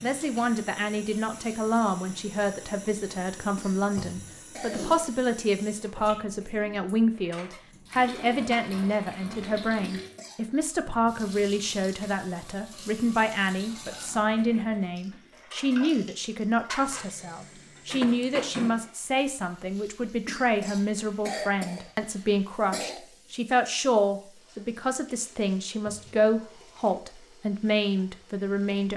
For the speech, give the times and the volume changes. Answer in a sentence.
You can hear the speech from 0.0 to 28.9 s, at a steady volume.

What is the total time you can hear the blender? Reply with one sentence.
The blender can't be heard in this clip.